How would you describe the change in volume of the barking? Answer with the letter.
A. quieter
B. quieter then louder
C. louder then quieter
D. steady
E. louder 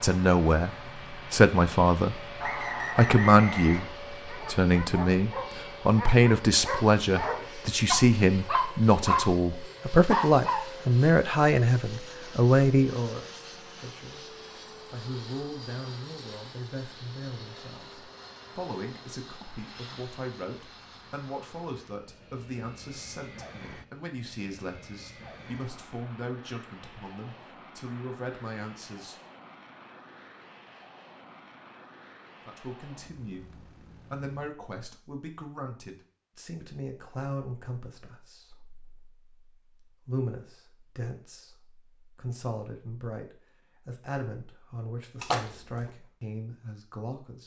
E.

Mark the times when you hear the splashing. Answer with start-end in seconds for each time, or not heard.
45.2-45.9.